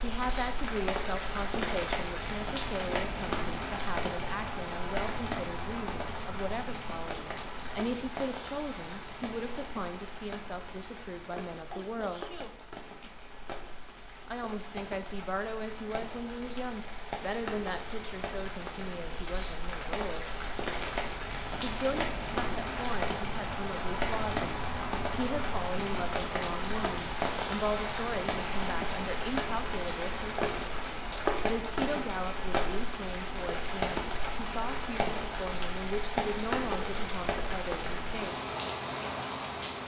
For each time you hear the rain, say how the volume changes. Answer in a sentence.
The rain can be heard from 0.0 to 39.8 s, getting quieter then louder.